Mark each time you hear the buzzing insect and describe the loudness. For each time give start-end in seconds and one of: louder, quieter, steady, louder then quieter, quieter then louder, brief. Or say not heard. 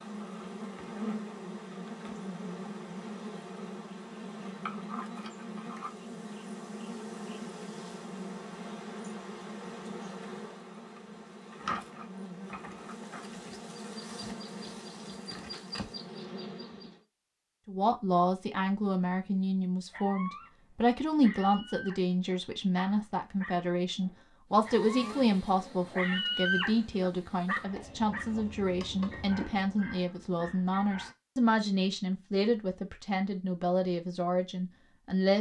0.0-17.0 steady
24.6-29.9 quieter then louder.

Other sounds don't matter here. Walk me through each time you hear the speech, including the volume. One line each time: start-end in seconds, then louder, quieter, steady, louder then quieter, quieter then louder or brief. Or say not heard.
17.6-35.3 steady.